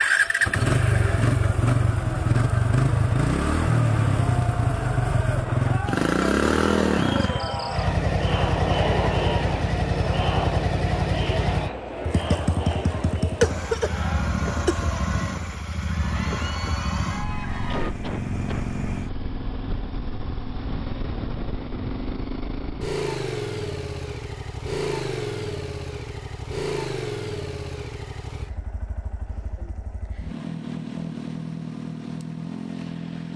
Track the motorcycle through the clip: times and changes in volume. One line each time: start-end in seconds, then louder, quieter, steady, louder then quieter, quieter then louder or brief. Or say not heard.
0.0-33.3 quieter.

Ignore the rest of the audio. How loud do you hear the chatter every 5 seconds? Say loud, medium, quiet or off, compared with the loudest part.
medium, loud, loud, medium, off, off, off.